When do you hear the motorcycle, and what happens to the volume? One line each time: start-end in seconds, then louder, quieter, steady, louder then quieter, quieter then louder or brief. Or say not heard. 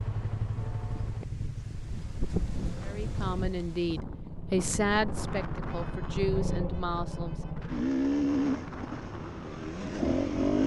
0.0-10.6 quieter then louder.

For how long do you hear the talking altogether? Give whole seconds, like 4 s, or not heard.
5 s.